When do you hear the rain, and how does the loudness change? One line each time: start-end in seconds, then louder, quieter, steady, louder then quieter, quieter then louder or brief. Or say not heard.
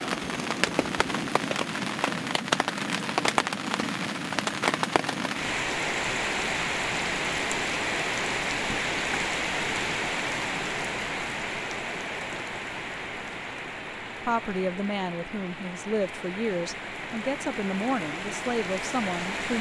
0.0-19.5 quieter.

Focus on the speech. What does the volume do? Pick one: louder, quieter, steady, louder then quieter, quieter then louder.
steady.